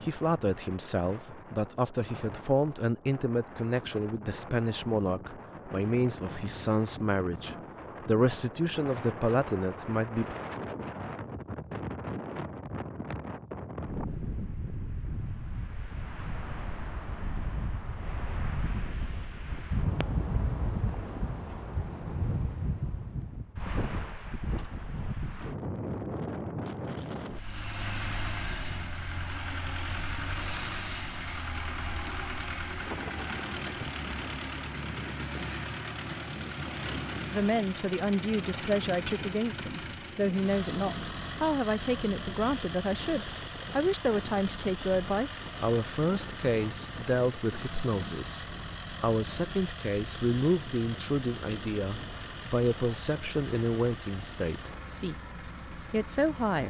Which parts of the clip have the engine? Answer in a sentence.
The engine can be heard from 27.3 to 56.6 s.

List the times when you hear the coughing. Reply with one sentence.
The coughing can't be heard in this clip.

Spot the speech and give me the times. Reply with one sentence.
The speech can be heard from 0.0 to 10.3 s and from 37.3 to 56.6 s.